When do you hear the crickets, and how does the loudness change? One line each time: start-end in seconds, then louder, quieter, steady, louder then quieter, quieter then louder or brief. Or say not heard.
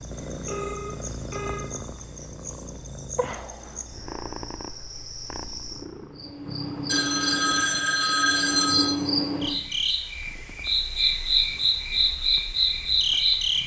0.0-13.6 louder.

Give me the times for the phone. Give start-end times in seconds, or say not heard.
0.5-1.6, 6.8-8.9.